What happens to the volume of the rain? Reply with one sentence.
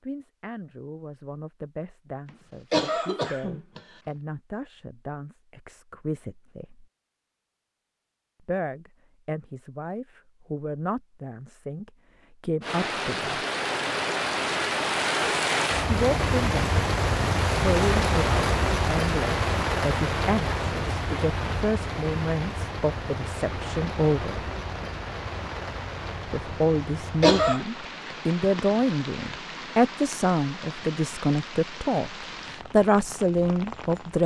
The loudness of the rain goes down.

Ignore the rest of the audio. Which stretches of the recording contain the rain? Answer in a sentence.
The rain can be heard from 12.6 to 34.2 s.